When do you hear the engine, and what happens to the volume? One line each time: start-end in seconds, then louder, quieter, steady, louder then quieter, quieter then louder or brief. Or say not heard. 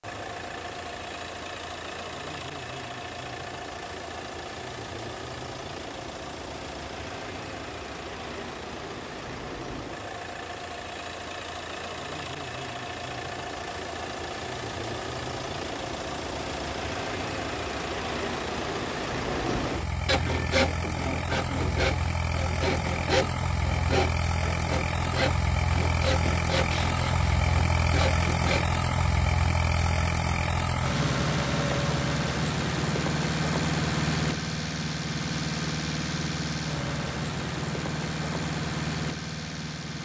0.0-39.9 louder.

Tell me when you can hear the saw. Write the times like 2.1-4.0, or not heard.
19.3-28.8.